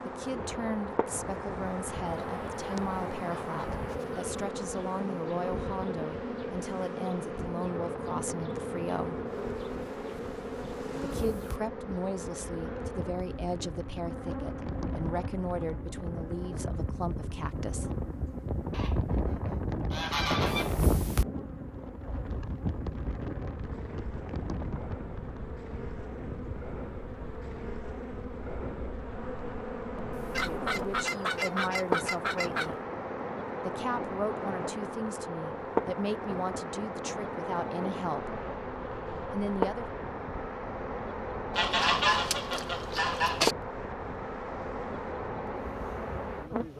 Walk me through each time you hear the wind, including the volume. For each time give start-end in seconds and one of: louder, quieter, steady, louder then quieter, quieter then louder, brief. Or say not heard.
0.0-46.7 louder then quieter.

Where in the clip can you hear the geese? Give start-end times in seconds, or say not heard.
2.0-4.4, 18.7-20.8, 30.3-32.7, 41.5-43.5.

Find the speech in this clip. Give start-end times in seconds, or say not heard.
0.1-9.2, 11.0-17.9, 30.3-32.8, 33.6-38.4, 39.3-39.9.